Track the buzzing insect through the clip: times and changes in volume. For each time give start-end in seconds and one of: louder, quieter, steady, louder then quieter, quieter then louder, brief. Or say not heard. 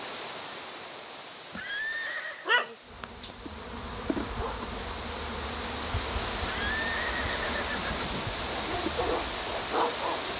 2.9-10.1 steady.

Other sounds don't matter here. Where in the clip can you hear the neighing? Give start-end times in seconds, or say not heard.
1.5-2.5, 6.4-8.3.